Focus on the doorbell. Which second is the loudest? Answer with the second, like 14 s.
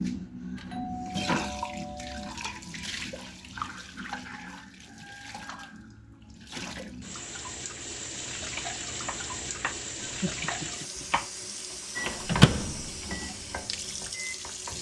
1 s.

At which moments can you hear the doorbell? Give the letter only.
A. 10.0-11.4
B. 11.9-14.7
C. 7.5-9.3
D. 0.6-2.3
D.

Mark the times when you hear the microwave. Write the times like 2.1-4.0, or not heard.
11.9-14.7.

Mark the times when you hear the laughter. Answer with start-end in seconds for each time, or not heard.
10.0-11.4.